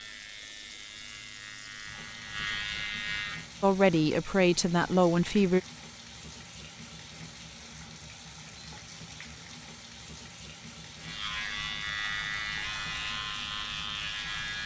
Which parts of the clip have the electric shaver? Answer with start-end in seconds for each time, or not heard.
0.0-3.5, 11.0-14.6.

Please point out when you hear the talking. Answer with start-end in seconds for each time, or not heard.
3.6-5.6.